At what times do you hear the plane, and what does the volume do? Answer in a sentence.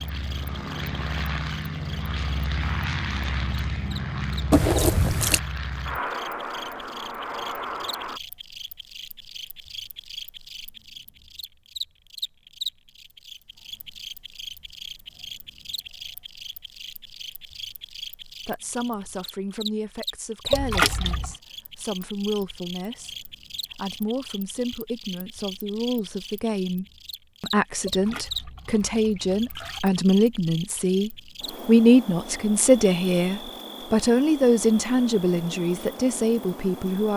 The plane can be heard from 0.0 to 8.2 s, at a steady volume.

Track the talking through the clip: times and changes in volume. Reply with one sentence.
The talking can be heard from 18.4 to 37.1 s, getting louder.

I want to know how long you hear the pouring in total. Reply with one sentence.
The pouring can be heard for 4 seconds in total.